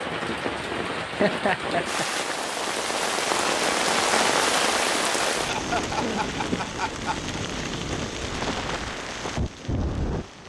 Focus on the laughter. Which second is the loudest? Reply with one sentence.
The loudest moment of the laughter is at 1 second.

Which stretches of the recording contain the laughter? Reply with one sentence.
The laughter can be heard from 1.0 to 2.0 s and from 5.4 to 7.3 s.